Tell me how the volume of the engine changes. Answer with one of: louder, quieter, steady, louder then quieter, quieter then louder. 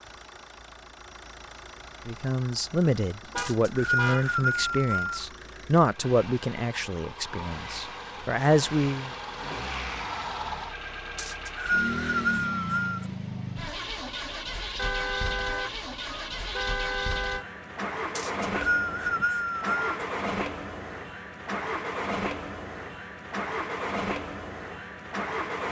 louder.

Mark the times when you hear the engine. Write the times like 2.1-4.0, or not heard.
0.0-25.6.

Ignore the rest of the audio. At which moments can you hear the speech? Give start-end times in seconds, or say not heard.
2.0-9.1.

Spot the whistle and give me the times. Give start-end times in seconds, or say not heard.
3.4-5.2, 11.2-13.1, 18.1-19.9.